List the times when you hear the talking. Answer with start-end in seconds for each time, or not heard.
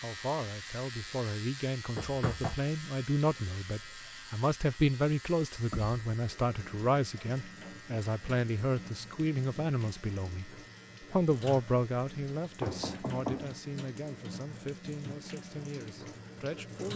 0.0-16.9.